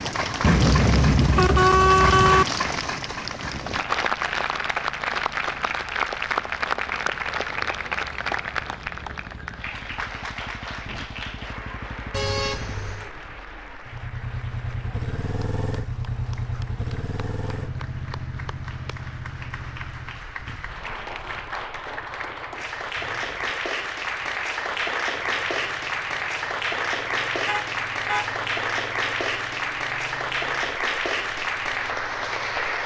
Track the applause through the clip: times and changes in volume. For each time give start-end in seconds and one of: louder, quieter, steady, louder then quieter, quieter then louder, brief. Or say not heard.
0.0-32.8 quieter then louder.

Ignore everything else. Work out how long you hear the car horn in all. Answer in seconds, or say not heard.
4 s.